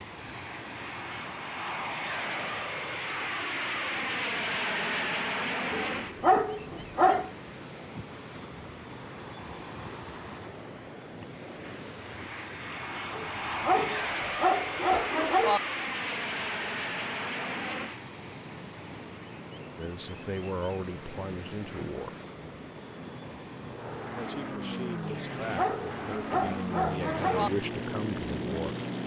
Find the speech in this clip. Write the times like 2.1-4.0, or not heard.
19.8-22.2, 24.1-28.8.